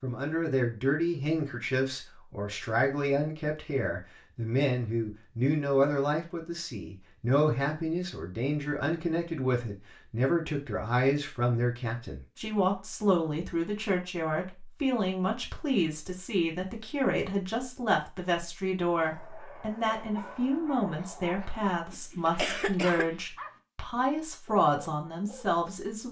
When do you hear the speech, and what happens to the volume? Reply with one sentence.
The speech can be heard from 0.0 to 26.0 s, at a steady volume.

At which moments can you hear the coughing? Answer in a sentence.
The coughing can be heard from 22.4 to 23.1 s.